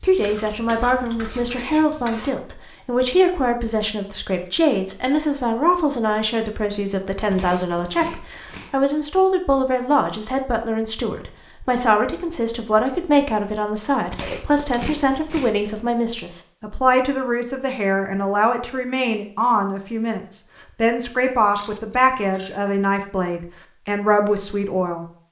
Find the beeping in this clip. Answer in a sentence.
The beeping can't be heard in this clip.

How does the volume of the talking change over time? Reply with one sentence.
The loudness of the talking stays about the same.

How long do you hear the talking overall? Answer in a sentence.
The talking can be heard for 25 seconds in total.